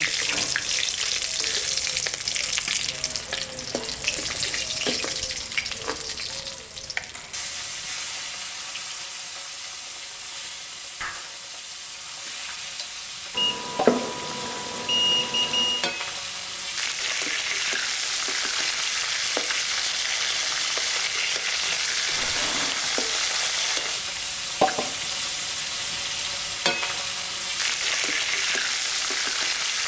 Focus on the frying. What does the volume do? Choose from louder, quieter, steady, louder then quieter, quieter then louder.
quieter then louder.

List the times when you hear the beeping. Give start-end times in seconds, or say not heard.
13.3-15.8.